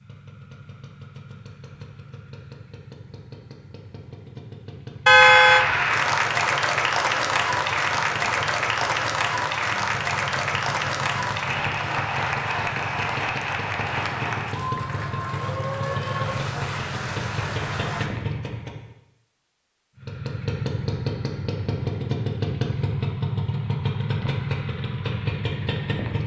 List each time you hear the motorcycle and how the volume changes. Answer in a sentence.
The motorcycle can be heard from 0.0 to 18.9 s, getting louder; and from 19.9 to 26.2 s, at a steady volume.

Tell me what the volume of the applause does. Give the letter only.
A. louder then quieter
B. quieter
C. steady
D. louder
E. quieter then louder
B.